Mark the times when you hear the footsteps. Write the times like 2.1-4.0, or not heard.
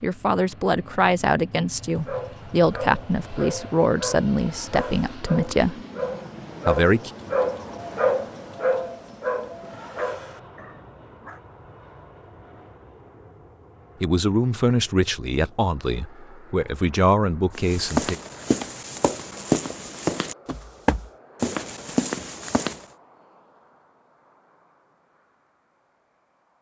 17.6-22.9.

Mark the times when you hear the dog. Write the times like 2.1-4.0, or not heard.
1.9-11.4.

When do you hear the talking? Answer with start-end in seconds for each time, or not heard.
0.0-5.8, 6.7-7.1, 14.0-18.1.